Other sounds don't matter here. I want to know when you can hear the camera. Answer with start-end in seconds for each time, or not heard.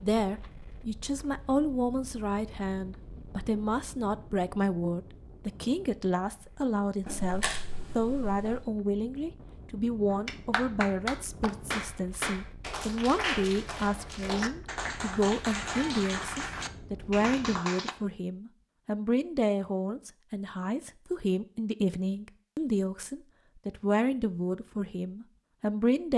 7.0-8.7.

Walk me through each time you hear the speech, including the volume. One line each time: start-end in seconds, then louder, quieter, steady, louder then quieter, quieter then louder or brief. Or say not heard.
0.0-26.1 steady.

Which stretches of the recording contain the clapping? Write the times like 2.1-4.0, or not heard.
10.1-17.9.